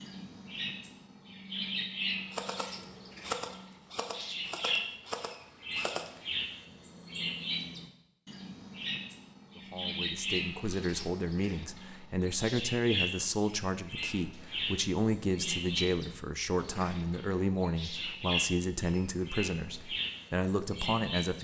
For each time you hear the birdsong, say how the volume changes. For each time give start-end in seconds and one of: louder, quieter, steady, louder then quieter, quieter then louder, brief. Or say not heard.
0.0-21.3 steady.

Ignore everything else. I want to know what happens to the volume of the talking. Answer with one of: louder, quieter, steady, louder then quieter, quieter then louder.
steady.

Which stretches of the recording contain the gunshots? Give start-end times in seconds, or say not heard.
2.3-6.1.